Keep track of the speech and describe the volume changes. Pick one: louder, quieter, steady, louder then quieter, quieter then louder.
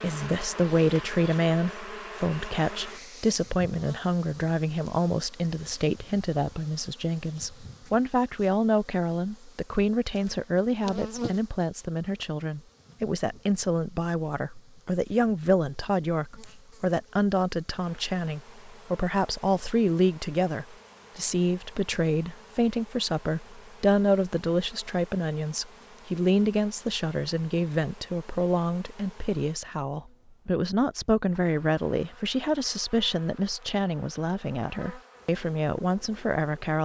steady.